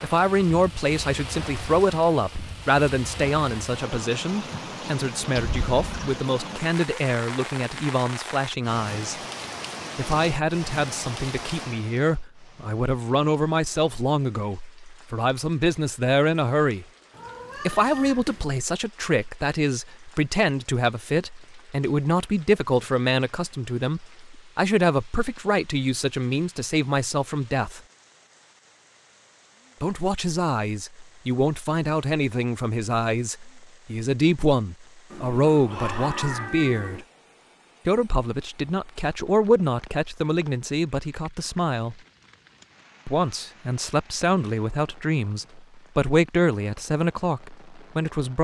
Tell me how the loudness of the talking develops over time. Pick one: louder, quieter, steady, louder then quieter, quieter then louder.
steady.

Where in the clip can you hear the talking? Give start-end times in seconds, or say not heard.
0.0-9.2, 9.9-16.9, 17.6-27.8, 29.8-37.0, 37.9-42.0, 43.0-48.3.